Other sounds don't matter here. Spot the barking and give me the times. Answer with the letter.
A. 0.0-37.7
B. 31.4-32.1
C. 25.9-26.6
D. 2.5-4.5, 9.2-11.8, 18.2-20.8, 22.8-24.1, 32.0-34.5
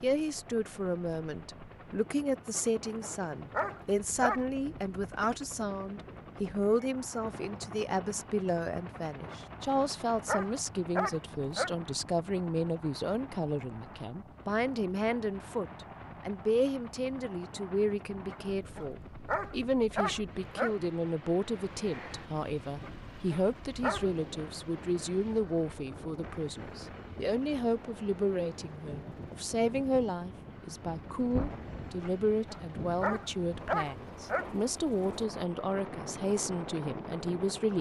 D.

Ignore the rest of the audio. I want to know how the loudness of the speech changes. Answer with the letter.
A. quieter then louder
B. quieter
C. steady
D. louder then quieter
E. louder
C.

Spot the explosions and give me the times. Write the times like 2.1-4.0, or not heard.
31.4-32.1.